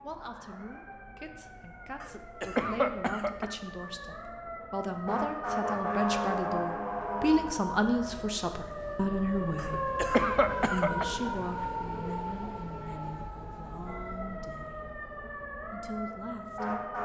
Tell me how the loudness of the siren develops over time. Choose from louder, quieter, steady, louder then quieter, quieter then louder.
louder then quieter.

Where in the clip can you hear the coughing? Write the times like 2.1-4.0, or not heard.
2.0-3.5, 9.6-11.1.